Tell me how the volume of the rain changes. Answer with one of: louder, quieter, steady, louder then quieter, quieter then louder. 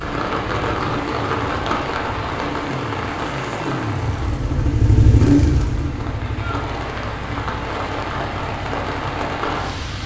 quieter then louder.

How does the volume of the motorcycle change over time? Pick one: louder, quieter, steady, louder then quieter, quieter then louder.
louder then quieter.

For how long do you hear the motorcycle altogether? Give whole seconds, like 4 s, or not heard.
10 s.